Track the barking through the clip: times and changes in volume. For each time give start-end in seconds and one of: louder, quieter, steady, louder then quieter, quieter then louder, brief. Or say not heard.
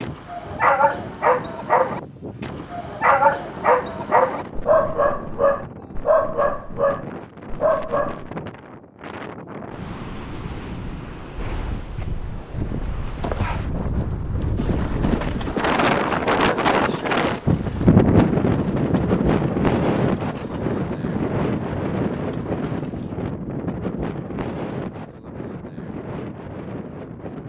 0.0-8.3 steady.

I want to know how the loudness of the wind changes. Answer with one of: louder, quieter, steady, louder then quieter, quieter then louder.
louder then quieter.